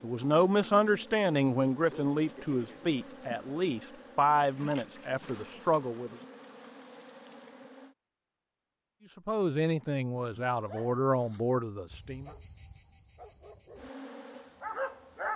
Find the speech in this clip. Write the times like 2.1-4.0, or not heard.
0.0-6.2, 9.2-12.3.